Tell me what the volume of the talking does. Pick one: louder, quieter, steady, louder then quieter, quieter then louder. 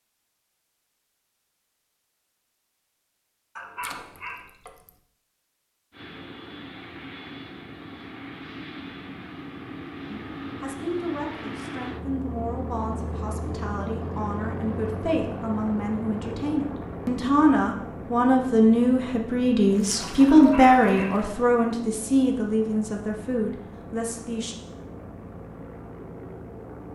louder then quieter.